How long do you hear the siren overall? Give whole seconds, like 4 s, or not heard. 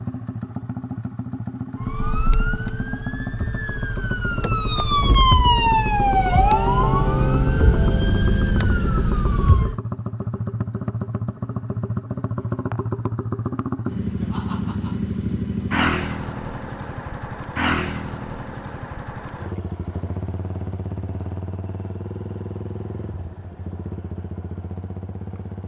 8 s.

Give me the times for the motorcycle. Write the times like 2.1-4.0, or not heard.
0.0-25.6.